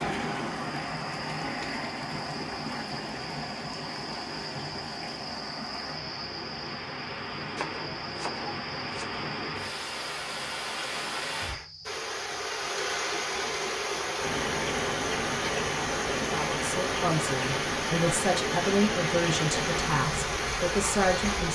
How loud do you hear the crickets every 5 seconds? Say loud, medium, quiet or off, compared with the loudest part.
medium, medium, medium, loud, medium.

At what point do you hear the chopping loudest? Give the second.
8 s.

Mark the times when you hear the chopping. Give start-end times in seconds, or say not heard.
7.5-9.2.